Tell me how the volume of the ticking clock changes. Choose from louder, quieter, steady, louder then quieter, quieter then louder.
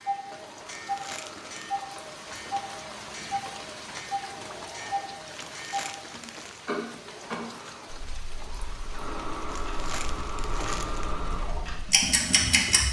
quieter then louder.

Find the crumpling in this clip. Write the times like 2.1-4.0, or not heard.
0.7-1.7, 5.3-6.6, 9.4-11.2.